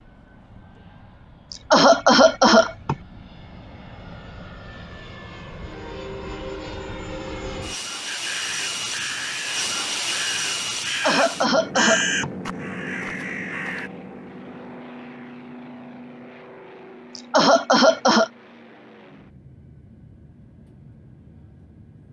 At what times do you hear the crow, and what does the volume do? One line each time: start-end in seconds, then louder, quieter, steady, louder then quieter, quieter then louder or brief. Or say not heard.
8.1-13.9 louder then quieter.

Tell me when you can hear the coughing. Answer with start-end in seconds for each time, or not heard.
1.5-3.0, 10.8-12.3, 17.1-18.3.